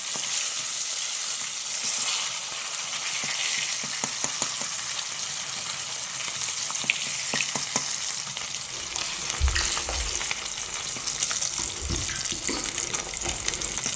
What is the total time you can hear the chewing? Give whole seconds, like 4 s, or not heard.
5 s.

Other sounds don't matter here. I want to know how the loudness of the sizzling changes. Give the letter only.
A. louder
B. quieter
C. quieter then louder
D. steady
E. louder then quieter
D.